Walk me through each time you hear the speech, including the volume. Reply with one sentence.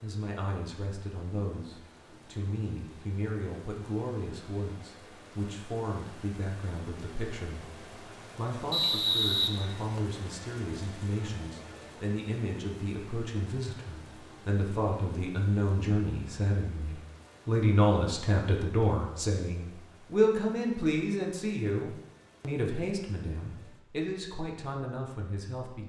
You can hear the speech from 0.0 to 7.7 s, at a steady volume; and from 8.3 to 25.8 s, getting louder then quieter.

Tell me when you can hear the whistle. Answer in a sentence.
The whistle can be heard from 8.7 to 10.2 s.